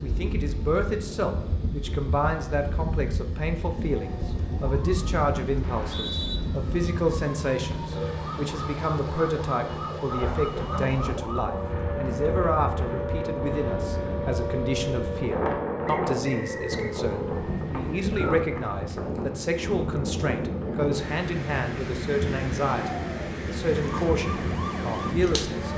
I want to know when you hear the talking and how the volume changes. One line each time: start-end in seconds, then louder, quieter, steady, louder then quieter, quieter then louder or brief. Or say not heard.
0.0-25.7 steady.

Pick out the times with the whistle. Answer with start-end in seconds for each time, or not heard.
5.6-6.4, 15.8-17.0.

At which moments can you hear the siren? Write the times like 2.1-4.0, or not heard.
3.8-18.4, 22.9-25.7.